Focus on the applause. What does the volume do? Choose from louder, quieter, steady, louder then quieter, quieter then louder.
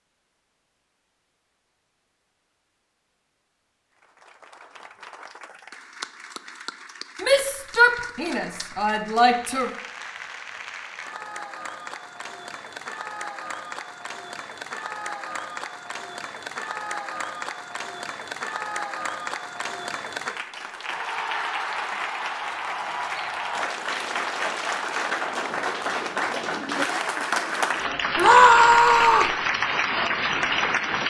louder.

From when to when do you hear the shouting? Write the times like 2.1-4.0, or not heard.
7.2-9.7, 28.1-29.3.